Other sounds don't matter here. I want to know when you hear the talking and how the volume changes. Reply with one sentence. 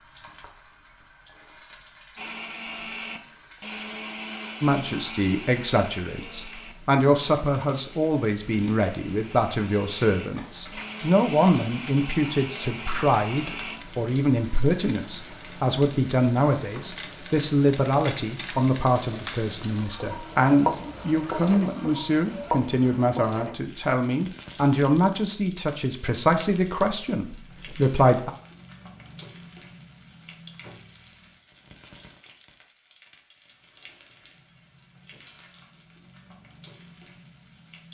You can hear the talking from 4.6 to 28.3 s, at a steady volume.